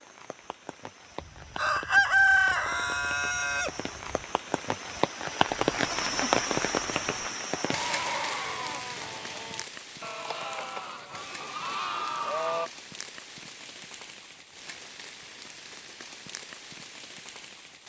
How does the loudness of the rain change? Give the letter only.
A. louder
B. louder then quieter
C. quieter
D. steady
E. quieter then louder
B.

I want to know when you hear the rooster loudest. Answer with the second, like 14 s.
2 s.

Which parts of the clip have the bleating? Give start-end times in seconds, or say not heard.
5.5-12.7.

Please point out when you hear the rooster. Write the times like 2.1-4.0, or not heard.
1.2-4.2.